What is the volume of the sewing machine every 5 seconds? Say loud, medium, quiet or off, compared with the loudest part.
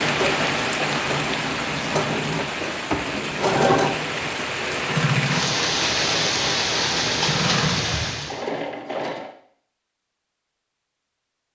loud, loud, off.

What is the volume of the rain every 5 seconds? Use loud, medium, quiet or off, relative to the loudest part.
loud, loud, off.